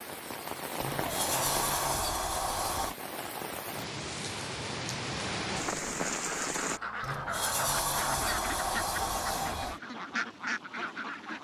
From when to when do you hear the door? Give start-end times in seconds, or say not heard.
0.8-3.0, 7.0-9.8.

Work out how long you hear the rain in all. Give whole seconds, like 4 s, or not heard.
7 s.